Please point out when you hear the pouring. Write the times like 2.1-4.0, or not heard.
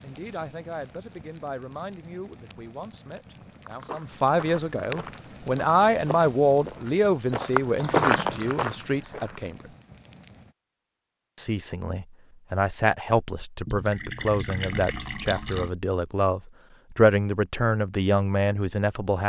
13.7-15.7.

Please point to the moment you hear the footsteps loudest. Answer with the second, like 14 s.
8 s.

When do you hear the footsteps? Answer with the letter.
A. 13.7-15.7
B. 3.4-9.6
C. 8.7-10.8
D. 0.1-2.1
B.